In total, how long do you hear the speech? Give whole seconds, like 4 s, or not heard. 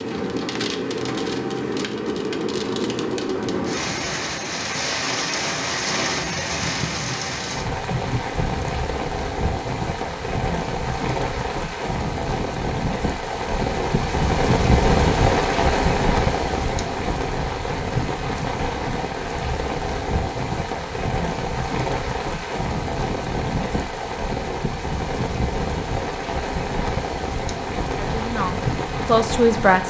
2 s.